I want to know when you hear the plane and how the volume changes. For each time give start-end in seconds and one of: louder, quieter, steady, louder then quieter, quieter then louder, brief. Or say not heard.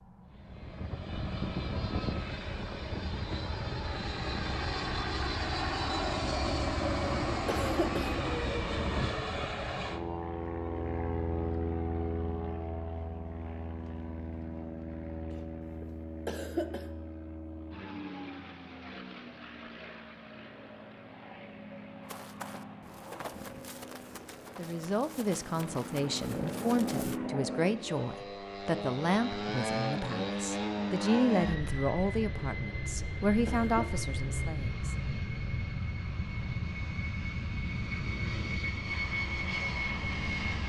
0.0-40.6 quieter then louder.